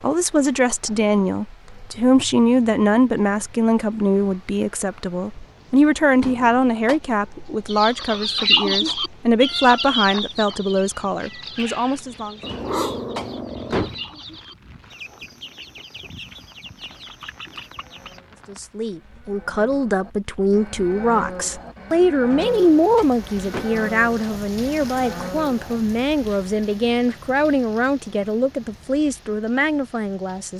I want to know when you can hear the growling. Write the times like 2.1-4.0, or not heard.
12.4-13.9.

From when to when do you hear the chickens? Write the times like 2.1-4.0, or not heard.
7.7-18.2.